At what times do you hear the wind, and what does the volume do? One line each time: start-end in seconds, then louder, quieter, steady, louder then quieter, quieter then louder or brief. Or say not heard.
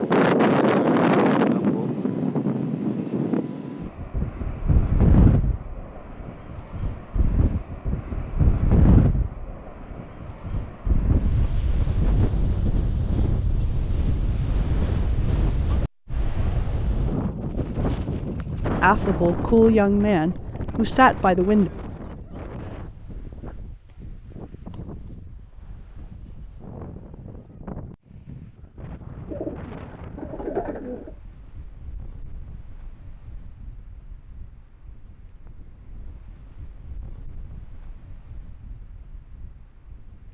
0.0-40.2 quieter.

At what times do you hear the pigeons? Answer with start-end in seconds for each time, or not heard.
29.2-31.1.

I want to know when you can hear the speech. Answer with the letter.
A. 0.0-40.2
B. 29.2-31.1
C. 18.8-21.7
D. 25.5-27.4
C.